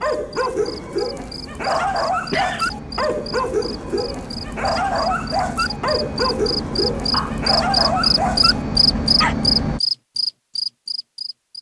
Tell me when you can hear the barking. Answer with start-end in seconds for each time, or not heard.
0.0-9.3.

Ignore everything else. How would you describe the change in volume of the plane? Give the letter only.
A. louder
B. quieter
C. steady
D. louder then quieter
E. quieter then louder
A.